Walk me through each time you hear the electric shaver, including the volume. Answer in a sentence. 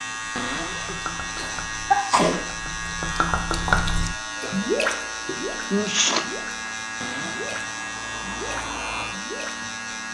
You can hear the electric shaver from 0.0 to 10.0 s, at a steady volume.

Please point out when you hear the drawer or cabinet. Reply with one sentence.
The drawer or cabinet can be heard from 0.3 to 1.0 s and from 7.0 to 7.5 s.